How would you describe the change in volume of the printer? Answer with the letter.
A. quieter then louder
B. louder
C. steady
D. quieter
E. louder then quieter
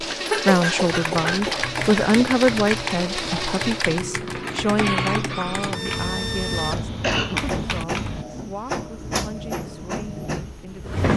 C.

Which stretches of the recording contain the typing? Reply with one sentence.
The typing can be heard from 0.8 to 8.2 s.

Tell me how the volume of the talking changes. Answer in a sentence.
The volume of the talking goes down.